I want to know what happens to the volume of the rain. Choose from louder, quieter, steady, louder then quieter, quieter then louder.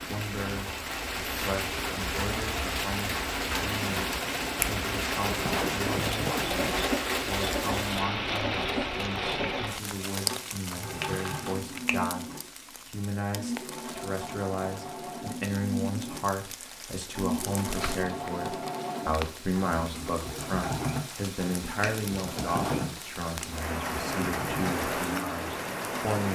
quieter then louder.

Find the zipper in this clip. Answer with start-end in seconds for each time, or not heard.
5.2-6.9, 22.4-23.0.